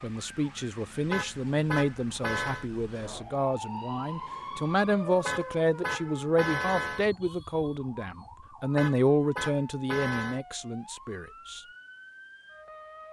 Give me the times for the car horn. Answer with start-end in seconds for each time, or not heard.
1.1-2.6, 5.2-7.0, 8.8-10.4.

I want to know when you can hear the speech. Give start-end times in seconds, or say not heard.
0.0-11.6.